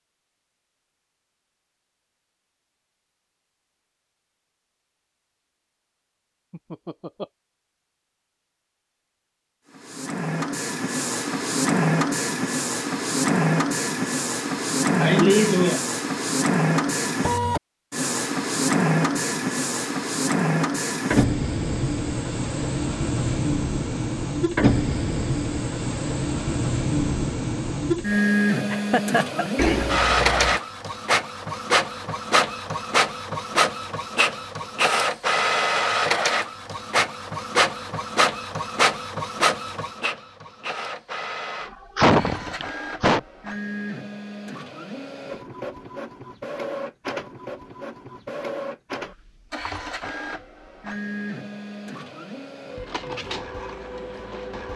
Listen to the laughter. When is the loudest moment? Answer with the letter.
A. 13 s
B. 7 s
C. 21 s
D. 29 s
D.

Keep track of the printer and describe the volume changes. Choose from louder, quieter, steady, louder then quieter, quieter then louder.
quieter.